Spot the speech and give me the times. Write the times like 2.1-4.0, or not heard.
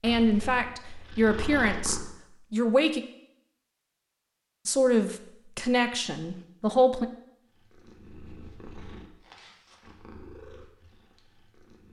0.0-3.0, 4.7-7.0.